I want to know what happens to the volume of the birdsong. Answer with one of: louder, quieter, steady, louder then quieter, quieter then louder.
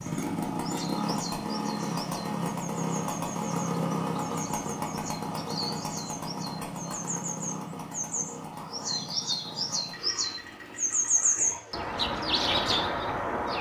louder.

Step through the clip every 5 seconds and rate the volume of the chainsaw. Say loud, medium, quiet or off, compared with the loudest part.
loud, medium, quiet.